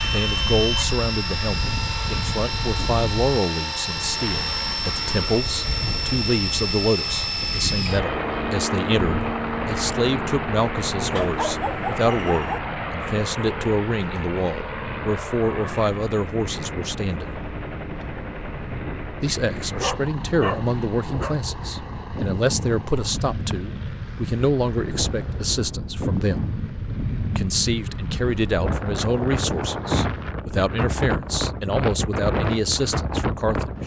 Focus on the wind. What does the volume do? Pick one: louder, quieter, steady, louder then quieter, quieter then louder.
louder.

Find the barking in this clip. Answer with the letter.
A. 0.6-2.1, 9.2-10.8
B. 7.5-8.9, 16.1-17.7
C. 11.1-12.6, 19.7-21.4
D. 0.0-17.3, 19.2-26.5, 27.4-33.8
C.